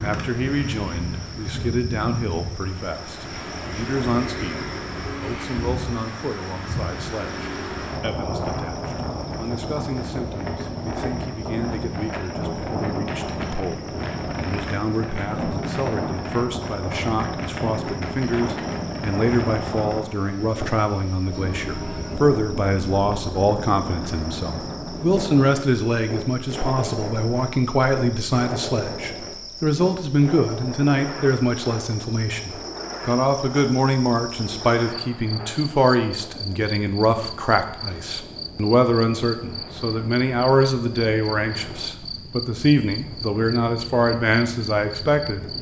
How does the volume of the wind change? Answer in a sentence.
The loudness of the wind goes down.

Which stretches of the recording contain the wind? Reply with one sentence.
The wind can be heard from 0.0 to 45.5 s.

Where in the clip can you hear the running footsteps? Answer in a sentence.
You can't hear the running footsteps here.